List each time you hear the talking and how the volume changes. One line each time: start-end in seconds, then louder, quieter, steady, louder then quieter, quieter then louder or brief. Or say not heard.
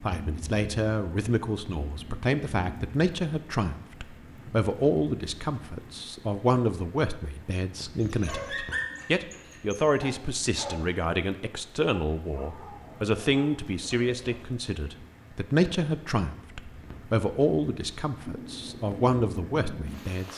0.0-20.3 steady.